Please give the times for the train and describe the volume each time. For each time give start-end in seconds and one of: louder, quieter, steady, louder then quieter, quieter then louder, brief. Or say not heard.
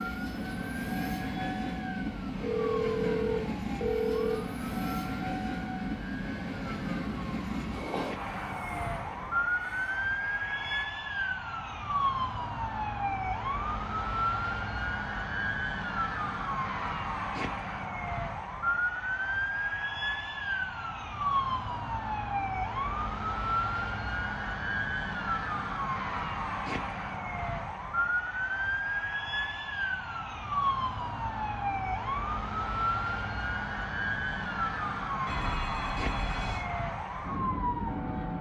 0.0-10.8 quieter.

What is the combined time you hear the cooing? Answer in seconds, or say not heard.
not heard.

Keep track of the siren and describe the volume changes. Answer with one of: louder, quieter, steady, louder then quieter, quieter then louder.
louder.